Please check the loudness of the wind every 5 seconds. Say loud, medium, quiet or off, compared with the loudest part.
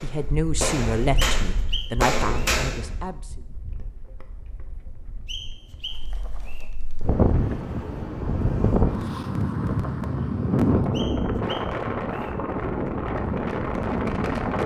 quiet, loud, loud.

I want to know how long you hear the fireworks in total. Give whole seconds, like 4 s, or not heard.
3 s.